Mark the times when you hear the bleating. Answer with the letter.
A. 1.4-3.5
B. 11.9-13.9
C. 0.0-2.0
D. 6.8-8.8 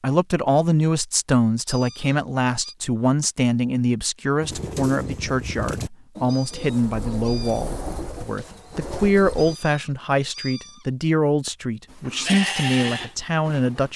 B.